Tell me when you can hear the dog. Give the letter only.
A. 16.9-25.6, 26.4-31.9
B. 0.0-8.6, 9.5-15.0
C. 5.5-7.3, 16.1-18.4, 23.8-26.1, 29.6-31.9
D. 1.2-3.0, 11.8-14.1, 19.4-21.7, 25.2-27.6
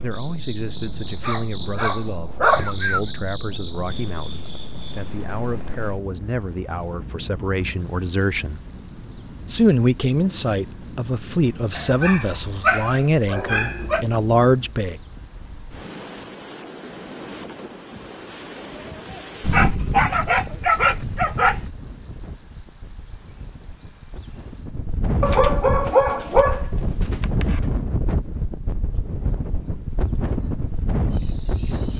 D.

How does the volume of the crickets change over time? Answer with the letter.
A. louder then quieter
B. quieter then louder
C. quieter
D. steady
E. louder
A.